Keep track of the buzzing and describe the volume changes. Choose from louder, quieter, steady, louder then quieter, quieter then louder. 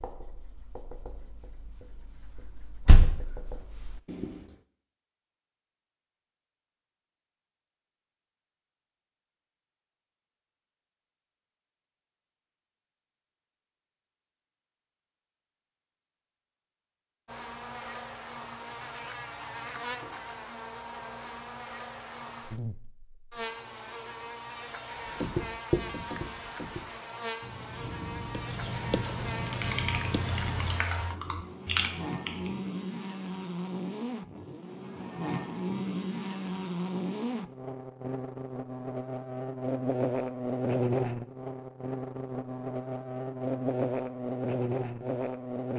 louder.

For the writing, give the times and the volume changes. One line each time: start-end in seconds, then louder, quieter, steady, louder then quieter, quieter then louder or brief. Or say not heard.
0.0-4.5 quieter then louder
24.9-30.9 quieter then louder.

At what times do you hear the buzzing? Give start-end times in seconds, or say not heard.
17.2-45.7.